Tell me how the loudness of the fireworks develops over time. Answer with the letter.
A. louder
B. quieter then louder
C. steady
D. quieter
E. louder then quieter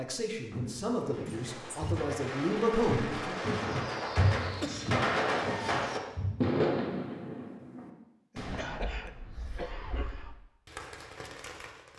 E.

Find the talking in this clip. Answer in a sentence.
You can hear the talking from 0.0 to 3.4 s.